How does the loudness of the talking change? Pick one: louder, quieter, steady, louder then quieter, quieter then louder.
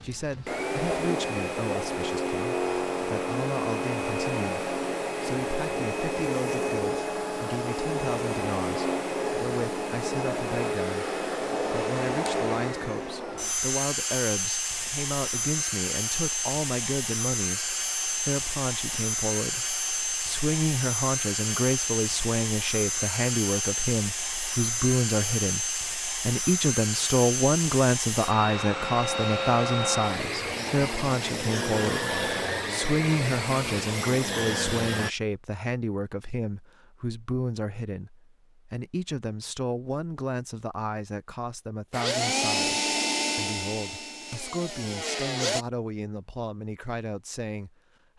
louder then quieter.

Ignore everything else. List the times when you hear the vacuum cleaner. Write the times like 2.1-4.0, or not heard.
0.0-35.1, 41.9-45.6.